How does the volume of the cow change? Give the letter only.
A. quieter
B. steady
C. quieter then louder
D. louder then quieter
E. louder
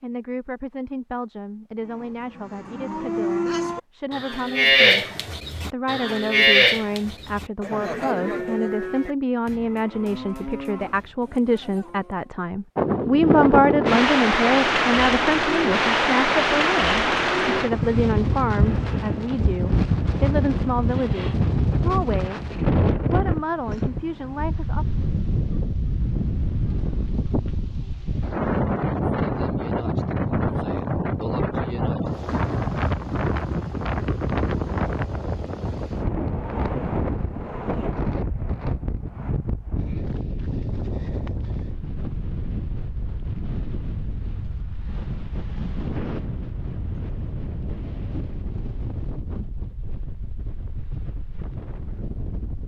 D.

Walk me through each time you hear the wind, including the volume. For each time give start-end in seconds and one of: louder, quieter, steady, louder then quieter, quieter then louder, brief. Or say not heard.
12.8-52.6 quieter.